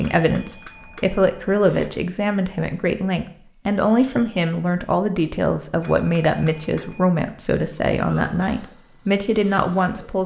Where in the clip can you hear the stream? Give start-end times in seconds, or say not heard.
not heard.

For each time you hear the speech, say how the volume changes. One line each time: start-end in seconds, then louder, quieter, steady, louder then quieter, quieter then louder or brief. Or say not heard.
0.0-10.2 steady.